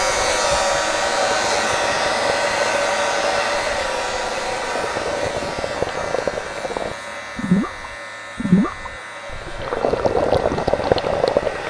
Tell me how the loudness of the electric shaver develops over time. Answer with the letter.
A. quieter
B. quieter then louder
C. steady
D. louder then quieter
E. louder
A.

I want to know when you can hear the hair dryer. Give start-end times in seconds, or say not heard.
0.0-11.6.